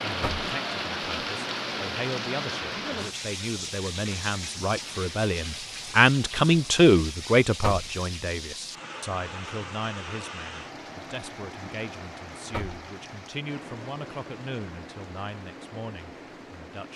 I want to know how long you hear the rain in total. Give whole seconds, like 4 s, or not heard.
17 s.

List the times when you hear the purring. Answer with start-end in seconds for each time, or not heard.
not heard.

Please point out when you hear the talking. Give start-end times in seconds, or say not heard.
0.0-16.9.